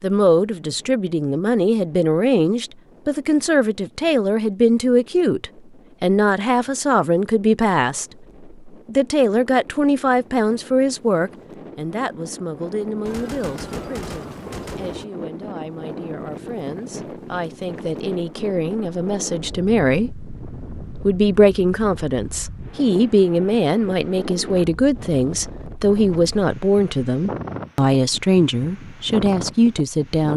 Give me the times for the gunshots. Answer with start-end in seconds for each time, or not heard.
13.1-15.1.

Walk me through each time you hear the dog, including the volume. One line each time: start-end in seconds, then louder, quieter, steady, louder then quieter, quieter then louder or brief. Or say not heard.
not heard.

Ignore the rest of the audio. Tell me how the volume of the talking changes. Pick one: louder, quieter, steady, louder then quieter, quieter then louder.
quieter then louder.